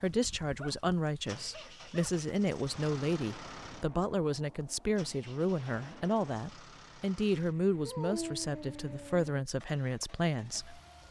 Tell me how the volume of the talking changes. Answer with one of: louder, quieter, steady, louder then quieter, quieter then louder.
steady.